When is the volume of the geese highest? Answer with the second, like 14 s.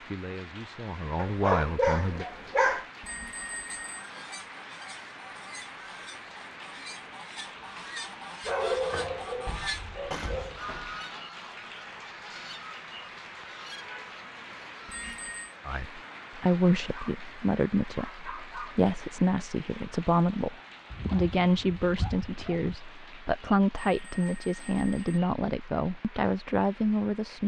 10 s.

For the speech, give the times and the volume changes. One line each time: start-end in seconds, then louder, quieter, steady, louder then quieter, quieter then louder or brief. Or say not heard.
0.1-2.2 brief
15.7-27.4 steady.